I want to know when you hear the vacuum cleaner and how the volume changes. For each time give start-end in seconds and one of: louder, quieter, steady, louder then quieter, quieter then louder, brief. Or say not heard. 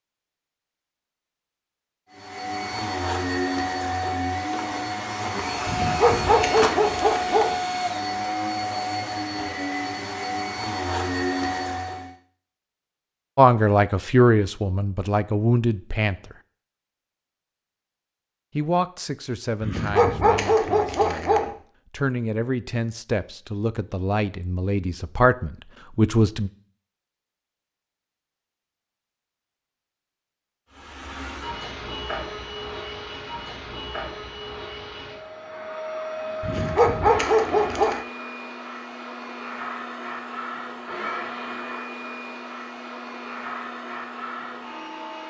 2.1-12.2 steady
30.7-45.2 steady.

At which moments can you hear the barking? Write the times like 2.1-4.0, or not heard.
5.7-7.5, 19.6-21.5, 36.4-38.0.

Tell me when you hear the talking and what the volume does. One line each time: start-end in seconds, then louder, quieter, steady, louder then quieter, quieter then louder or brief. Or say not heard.
13.3-16.1 brief
18.6-26.5 quieter then louder.